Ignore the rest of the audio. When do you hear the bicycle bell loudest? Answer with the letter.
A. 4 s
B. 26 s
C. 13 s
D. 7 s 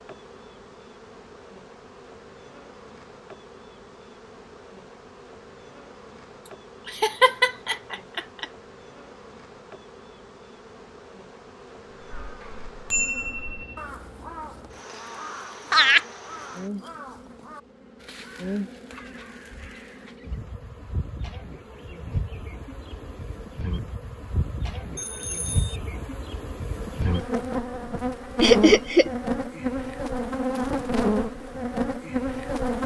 C.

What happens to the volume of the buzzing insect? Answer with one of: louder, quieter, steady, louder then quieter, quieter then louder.
louder.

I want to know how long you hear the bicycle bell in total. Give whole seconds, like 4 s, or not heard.
2 s.